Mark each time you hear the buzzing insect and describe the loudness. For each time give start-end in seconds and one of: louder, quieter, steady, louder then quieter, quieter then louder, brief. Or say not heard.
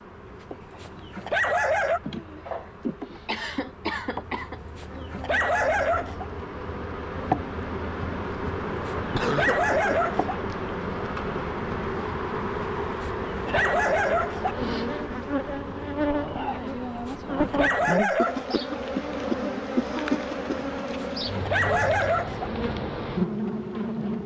0.0-24.2 louder.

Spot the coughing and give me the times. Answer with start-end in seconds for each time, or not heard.
2.0-4.6, 9.1-9.7, 18.1-20.7.